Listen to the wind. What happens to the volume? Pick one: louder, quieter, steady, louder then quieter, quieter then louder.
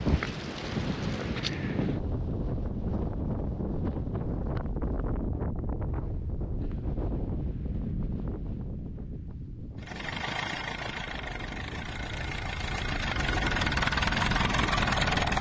quieter then louder.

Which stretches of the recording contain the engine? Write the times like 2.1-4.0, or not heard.
9.8-15.3.